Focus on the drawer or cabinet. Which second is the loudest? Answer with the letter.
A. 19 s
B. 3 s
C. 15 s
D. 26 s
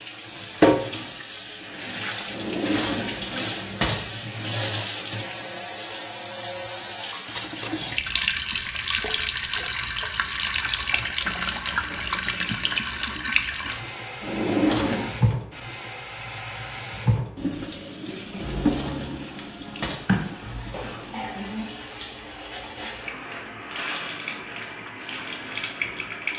C.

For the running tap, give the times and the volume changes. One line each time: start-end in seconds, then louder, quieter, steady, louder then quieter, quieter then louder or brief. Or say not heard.
0.0-26.3 quieter.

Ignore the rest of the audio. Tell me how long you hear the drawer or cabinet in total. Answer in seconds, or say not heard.
5 s.